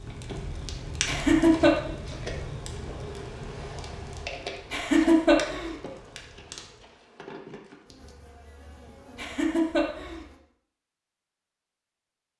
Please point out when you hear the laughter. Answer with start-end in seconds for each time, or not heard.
1.1-1.8, 4.7-5.8, 9.2-10.2.